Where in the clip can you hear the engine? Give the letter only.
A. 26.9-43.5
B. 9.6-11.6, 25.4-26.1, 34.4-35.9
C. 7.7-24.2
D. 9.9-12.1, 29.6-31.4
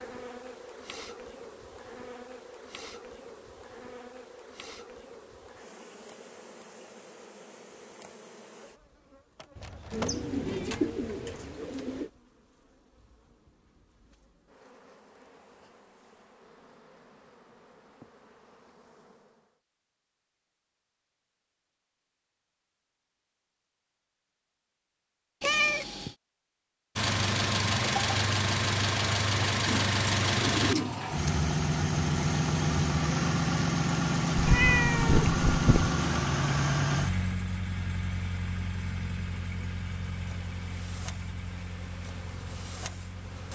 A.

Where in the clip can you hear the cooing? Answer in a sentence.
The cooing can be heard from 9.9 to 12.1 s and from 29.6 to 31.4 s.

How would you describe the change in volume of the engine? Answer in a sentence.
The loudness of the engine goes down.